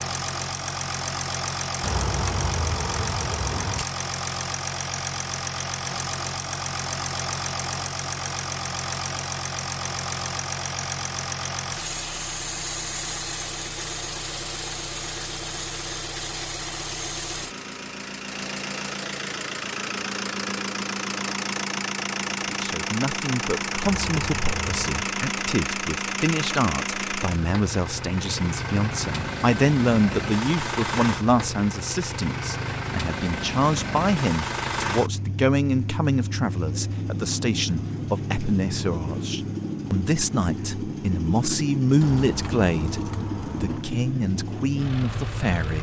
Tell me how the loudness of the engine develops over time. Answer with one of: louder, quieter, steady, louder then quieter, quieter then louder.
steady.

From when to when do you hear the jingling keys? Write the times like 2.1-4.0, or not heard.
1.8-3.9, 23.8-24.9, 42.0-43.9.